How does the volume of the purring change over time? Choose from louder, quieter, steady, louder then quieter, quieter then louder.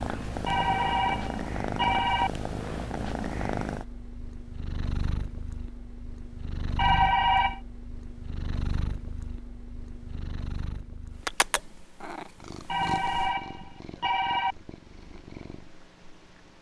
quieter.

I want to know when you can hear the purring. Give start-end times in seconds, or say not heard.
0.0-16.5.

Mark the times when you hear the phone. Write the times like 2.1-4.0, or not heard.
0.5-2.3, 6.8-7.6, 12.7-14.6.